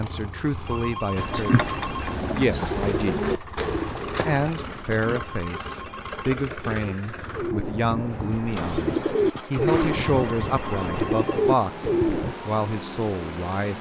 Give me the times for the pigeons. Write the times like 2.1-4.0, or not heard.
1.1-12.3.